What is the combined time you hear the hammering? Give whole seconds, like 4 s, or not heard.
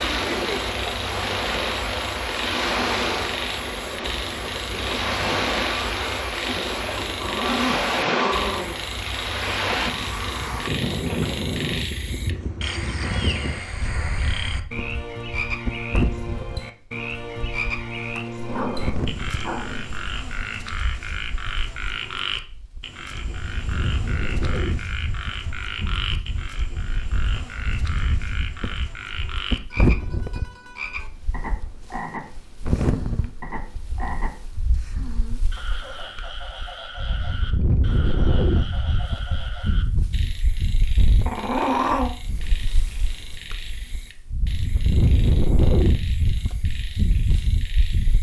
not heard.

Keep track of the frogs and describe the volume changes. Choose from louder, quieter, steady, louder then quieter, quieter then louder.
quieter.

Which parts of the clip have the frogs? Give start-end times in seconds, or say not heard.
0.0-48.1.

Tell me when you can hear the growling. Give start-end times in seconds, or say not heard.
6.9-8.8, 18.4-19.9, 41.2-42.1.